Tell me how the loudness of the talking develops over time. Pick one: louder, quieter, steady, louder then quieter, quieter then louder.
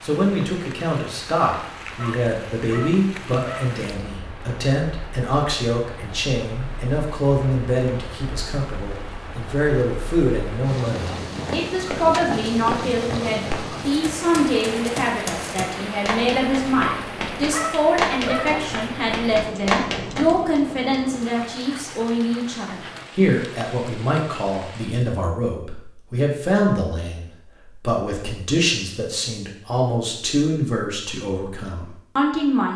steady.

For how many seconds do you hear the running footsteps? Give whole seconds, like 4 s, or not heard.
9 s.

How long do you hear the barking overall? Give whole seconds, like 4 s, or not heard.
4 s.